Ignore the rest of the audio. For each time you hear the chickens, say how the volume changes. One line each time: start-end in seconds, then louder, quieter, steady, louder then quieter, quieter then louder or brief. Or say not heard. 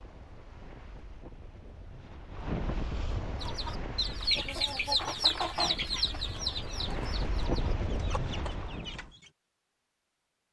3.4-9.3 quieter.